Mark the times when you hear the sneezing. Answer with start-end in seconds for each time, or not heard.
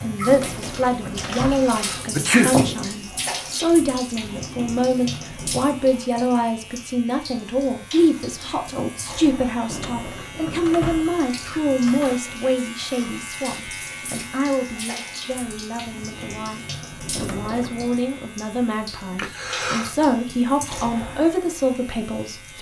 1.4-2.9, 19.1-19.9.